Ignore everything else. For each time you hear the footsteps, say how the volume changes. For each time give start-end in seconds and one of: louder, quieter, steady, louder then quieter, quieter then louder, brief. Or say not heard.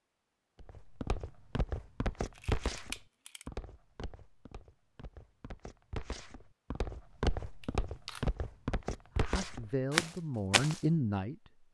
0.6-10.8 quieter then louder.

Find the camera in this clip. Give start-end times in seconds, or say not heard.
2.4-3.5, 7.6-8.3.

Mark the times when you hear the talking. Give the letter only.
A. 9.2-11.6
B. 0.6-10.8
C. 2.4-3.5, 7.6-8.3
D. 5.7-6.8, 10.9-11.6
A.